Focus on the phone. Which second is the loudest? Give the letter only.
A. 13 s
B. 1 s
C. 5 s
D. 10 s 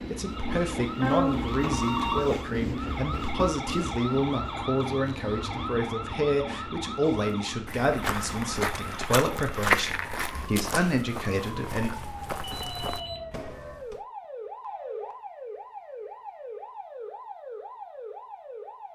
B.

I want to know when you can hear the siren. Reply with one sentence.
You can hear the siren from 0.1 to 18.8 s.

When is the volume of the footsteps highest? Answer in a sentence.
The volume of the footsteps peaks at 10 seconds.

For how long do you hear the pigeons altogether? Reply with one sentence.
The pigeons can't be heard in this clip.